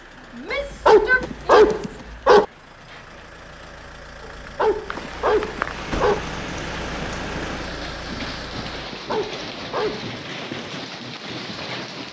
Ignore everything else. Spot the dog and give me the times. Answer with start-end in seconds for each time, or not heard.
0.5-2.5, 4.2-6.2, 8.9-10.1.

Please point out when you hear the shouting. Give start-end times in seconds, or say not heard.
0.3-1.9.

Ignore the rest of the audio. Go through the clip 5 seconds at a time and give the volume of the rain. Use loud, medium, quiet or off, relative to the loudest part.
quiet, loud, loud.